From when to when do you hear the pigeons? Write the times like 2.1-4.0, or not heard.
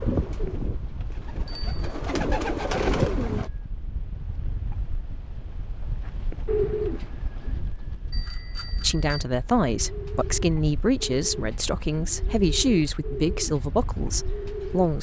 0.0-3.5, 6.0-7.7, 9.6-14.9.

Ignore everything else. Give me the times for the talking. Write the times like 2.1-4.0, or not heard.
8.8-14.9.